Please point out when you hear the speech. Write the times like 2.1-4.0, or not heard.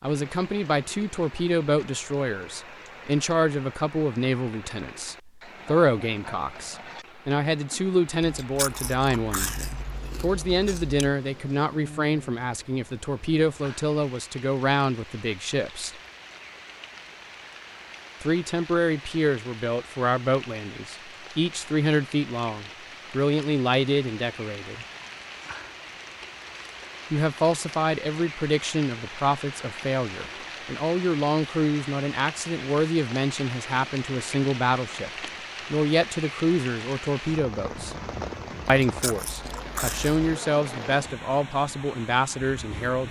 0.0-15.9, 18.2-24.9, 27.1-35.1, 35.7-38.0, 38.6-43.0.